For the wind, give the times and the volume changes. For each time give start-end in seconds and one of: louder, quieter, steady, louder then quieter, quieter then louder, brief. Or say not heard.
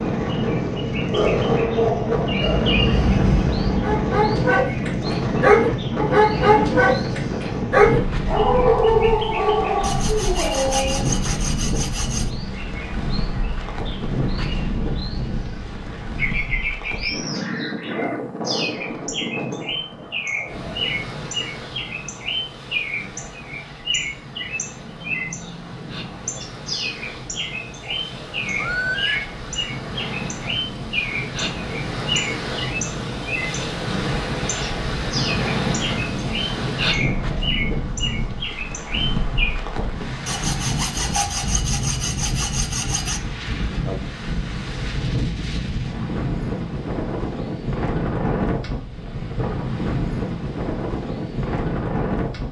0.0-52.4 quieter then louder.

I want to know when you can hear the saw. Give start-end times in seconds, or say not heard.
9.8-12.3, 40.2-43.2.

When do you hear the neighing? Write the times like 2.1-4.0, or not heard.
28.6-29.2.